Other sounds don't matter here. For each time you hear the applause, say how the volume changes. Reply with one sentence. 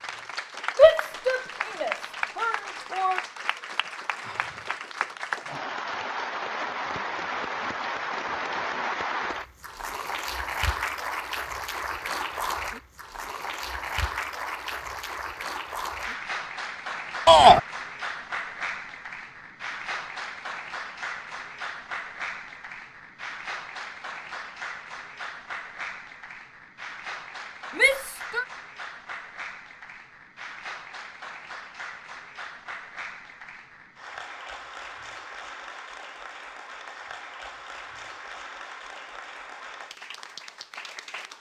You can hear the applause from 0.0 to 41.3 s, getting quieter.